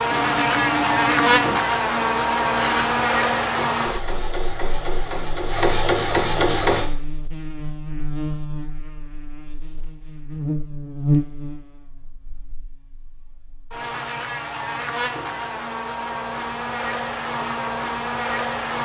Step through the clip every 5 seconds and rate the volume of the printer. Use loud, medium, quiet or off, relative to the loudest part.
medium, loud, off, off.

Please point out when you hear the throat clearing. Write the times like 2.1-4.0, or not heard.
not heard.